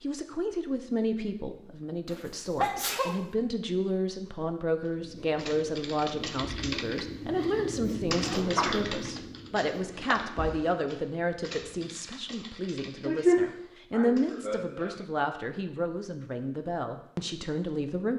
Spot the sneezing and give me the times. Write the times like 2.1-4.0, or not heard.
2.0-3.2, 8.2-8.8, 13.1-14.9.